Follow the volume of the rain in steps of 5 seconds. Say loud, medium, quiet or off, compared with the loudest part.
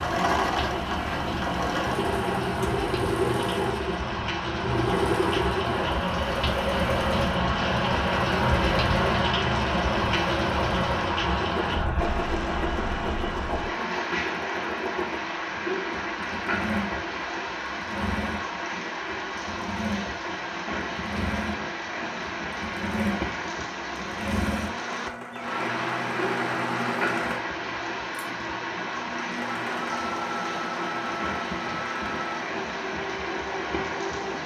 medium, loud, loud, medium, medium, medium, medium.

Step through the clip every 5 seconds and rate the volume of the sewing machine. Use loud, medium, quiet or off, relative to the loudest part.
loud, loud, medium, medium, medium, medium, medium.